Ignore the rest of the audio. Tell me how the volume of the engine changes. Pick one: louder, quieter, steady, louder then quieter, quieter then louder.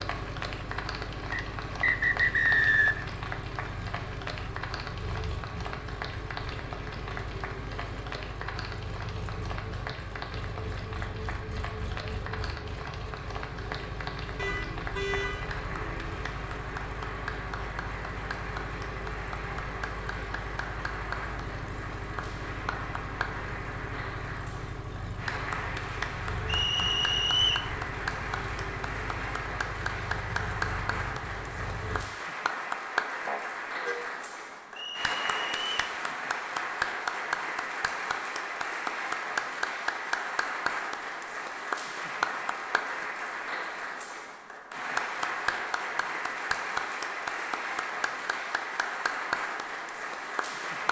steady.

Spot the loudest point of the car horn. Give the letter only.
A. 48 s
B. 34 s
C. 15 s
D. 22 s
C.